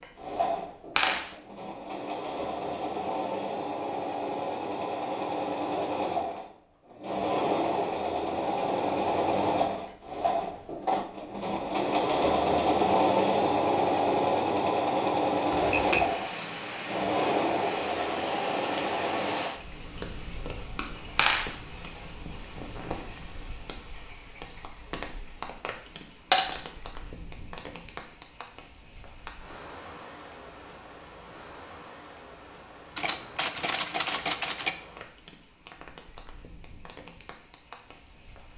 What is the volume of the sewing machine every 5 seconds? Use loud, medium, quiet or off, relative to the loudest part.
medium, loud, loud, loud, off, off, off, off.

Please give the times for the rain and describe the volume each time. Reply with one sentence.
You can hear the rain from 15.4 to 38.5 s, getting quieter.